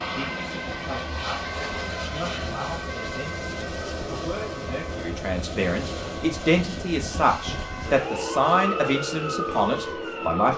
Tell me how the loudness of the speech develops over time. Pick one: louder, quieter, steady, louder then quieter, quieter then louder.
louder.